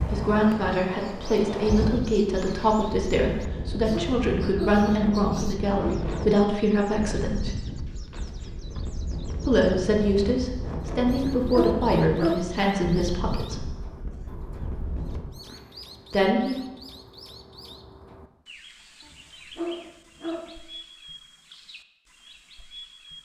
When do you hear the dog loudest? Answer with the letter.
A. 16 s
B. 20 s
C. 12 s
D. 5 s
C.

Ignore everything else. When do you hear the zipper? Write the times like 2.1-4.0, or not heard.
not heard.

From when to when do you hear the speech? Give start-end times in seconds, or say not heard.
0.1-7.5, 9.4-13.7, 16.1-16.6.